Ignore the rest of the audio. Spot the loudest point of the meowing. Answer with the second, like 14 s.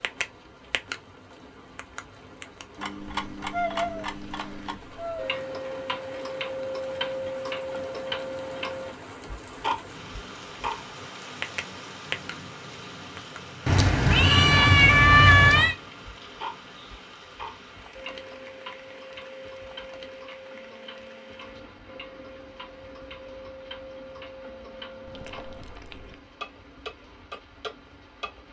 15 s.